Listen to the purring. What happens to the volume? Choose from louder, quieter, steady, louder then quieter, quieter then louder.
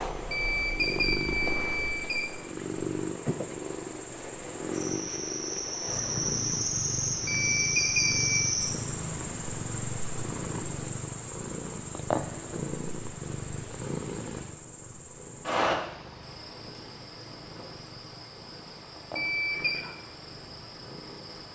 quieter.